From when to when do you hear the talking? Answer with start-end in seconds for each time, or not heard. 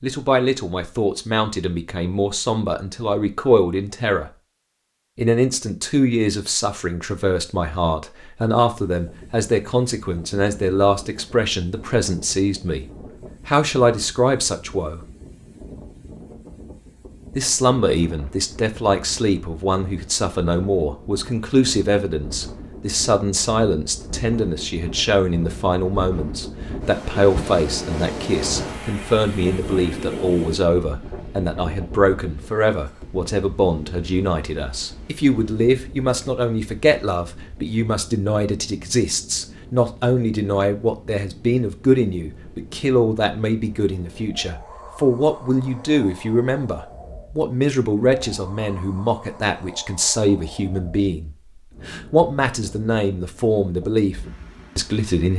0.0-4.3, 5.2-15.1, 17.4-55.3.